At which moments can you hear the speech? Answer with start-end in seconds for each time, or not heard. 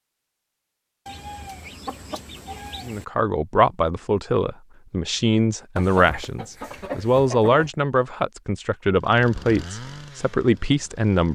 2.9-11.3.